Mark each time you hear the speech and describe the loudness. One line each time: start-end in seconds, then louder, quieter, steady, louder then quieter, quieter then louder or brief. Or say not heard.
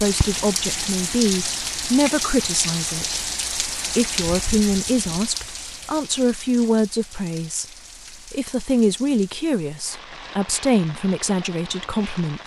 0.0-12.4 steady.